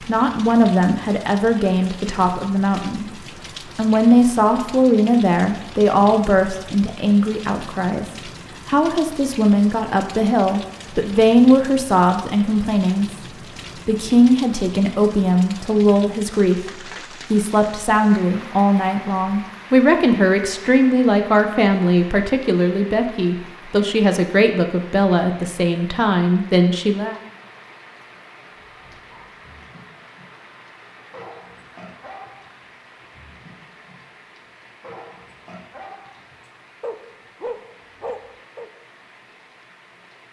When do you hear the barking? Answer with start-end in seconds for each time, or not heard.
28.6-30.3, 31.1-34.0, 34.8-38.7.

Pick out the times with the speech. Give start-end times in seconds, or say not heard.
0.0-13.1, 13.8-27.1.